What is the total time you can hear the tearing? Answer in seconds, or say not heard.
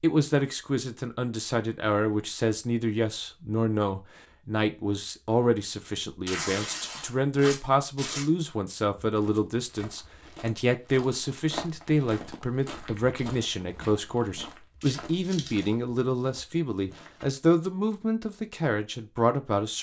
3 s.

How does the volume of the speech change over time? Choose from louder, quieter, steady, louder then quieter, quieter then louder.
steady.